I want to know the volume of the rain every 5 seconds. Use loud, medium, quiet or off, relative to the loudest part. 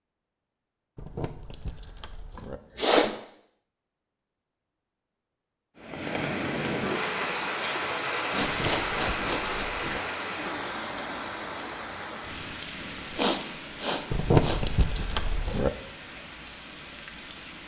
off, loud, medium, quiet.